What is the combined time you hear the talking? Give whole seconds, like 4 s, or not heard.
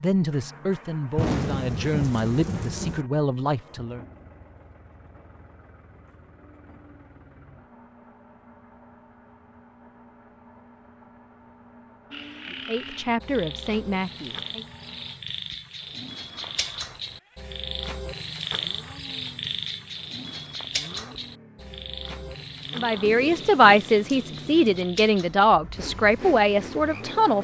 11 s.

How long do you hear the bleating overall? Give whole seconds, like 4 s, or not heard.
not heard.